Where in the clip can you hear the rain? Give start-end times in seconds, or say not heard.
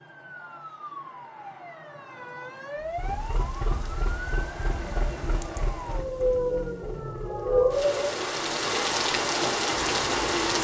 2.8-10.5.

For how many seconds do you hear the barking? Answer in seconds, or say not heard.
not heard.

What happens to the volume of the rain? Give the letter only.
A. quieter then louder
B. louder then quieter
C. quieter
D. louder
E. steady
A.